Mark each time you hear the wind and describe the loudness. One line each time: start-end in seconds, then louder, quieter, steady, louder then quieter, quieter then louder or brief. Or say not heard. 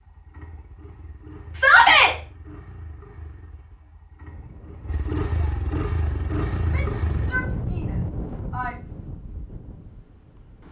4.2-10.6 louder then quieter.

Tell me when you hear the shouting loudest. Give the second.
2 s.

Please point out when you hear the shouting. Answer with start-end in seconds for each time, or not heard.
1.5-2.1, 6.5-8.8.